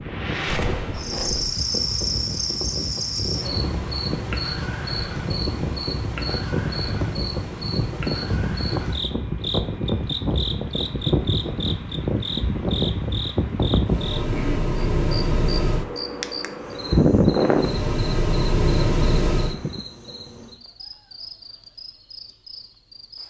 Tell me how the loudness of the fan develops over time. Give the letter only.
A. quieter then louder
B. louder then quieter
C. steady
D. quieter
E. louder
E.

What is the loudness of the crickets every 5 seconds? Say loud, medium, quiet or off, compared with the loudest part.
loud, loud, loud, medium, quiet.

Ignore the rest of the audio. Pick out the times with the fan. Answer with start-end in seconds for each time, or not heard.
0.0-19.8.